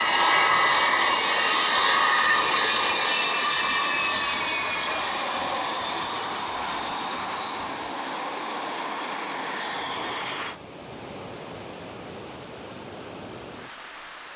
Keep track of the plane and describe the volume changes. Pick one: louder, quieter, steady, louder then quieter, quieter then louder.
quieter.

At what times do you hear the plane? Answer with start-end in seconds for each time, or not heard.
0.0-10.6.